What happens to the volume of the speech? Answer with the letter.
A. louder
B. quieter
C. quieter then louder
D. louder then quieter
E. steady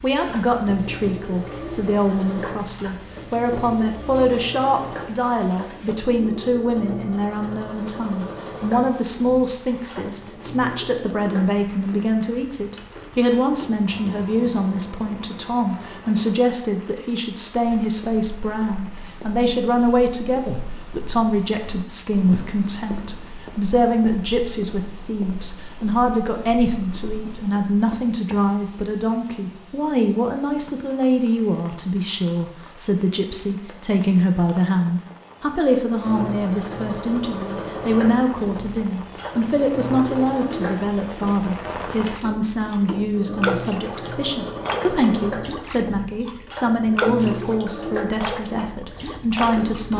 E.